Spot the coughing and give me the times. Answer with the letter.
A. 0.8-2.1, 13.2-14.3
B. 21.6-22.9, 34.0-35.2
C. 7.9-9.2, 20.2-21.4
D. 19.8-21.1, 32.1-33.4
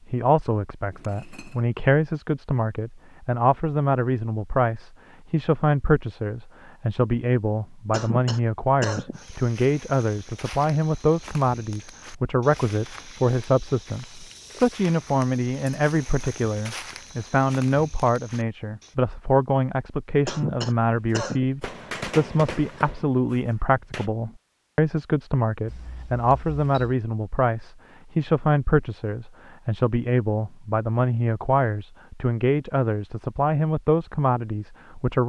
C.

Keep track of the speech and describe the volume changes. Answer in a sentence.
The volume of the speech stays about the same.